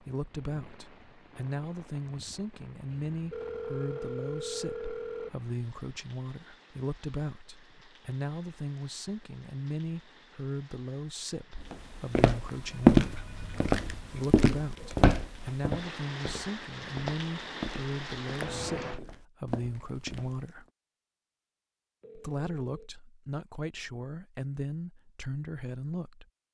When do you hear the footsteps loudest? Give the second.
13 s.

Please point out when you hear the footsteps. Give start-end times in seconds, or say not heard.
11.7-20.5.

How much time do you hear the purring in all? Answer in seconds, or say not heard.
not heard.